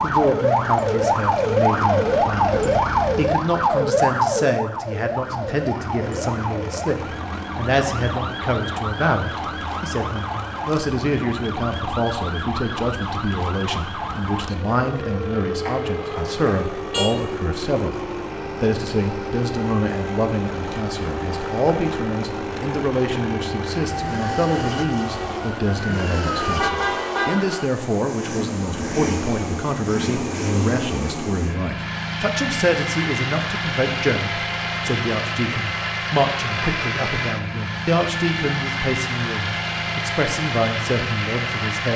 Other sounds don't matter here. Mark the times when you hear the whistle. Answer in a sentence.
The whistle can't be heard in this clip.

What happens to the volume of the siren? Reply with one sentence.
The loudness of the siren goes down.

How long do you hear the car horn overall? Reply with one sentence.
You can hear the car horn for 2 seconds altogether.